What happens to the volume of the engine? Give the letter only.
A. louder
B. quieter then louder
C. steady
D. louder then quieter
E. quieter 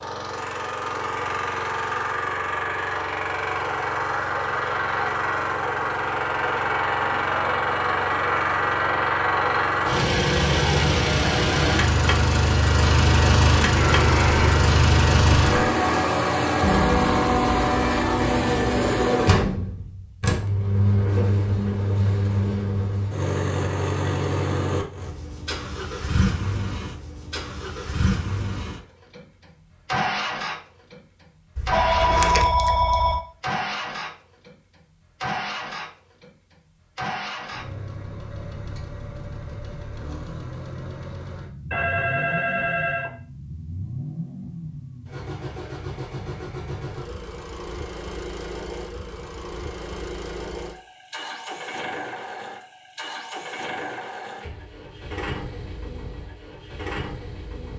E.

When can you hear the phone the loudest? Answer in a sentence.
The loudest moment of the phone is at 32 seconds.